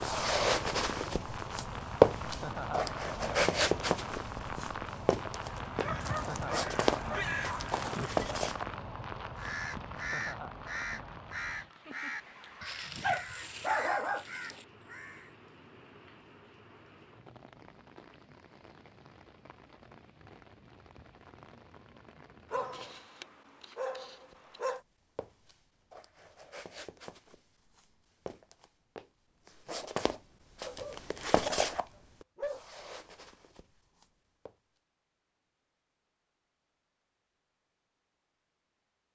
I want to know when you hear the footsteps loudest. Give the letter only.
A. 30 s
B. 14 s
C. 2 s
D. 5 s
C.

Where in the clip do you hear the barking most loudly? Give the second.
14 s.